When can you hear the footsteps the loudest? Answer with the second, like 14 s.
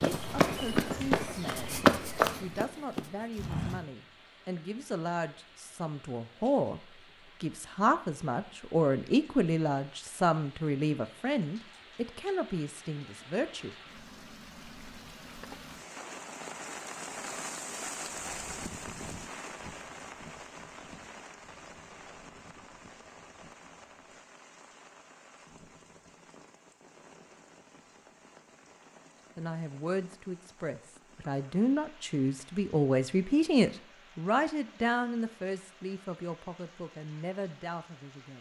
2 s.